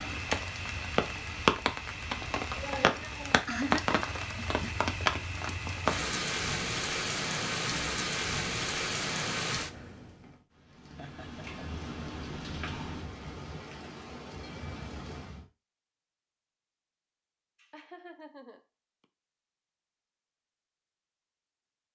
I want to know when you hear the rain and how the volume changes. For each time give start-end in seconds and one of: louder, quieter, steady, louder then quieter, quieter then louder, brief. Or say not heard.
0.0-15.4 quieter.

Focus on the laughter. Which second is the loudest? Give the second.
4 s.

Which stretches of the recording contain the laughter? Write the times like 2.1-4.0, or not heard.
2.6-4.8, 10.9-11.4, 17.6-19.1.